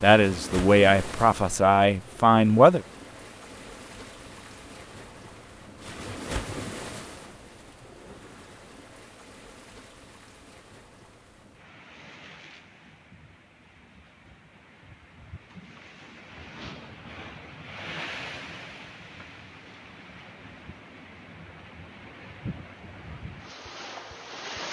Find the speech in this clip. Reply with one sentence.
The speech can be heard from 0.0 to 2.8 s.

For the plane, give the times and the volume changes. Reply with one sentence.
The plane can't be heard in this clip.